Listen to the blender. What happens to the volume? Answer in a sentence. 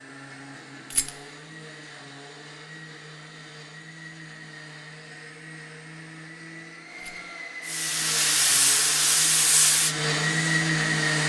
The loudness of the blender goes up.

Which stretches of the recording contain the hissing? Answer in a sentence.
You can hear the hissing from 7.7 to 11.2 s.